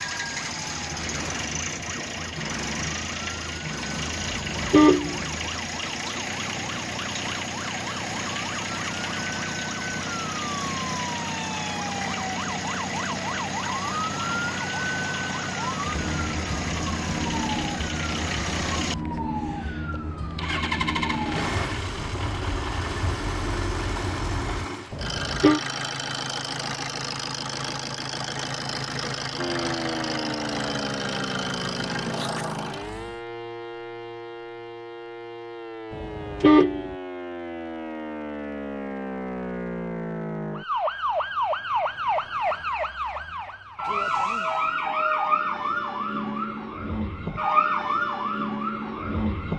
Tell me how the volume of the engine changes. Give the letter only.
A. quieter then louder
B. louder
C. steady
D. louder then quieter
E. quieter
C.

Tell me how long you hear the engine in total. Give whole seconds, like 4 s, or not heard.
33 s.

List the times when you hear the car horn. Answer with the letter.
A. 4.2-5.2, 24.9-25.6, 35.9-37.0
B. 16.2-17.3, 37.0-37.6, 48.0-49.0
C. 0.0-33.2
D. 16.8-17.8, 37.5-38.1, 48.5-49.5
A.